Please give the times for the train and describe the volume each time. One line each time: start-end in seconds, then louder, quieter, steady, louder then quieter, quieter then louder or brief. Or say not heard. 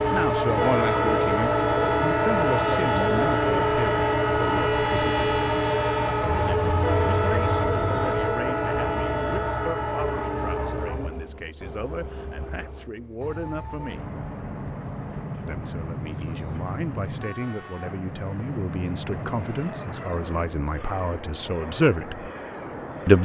0.0-23.2 quieter.